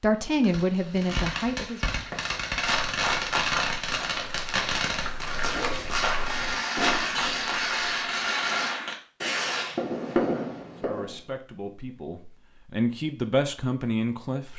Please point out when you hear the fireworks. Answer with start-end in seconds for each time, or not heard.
0.1-11.2.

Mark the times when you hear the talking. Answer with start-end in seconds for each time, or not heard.
0.0-1.9, 10.8-14.5.